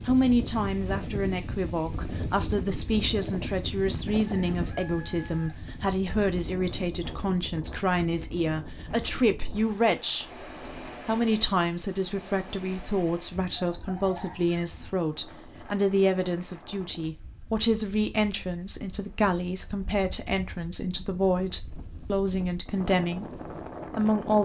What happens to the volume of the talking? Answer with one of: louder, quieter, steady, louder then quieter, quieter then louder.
steady.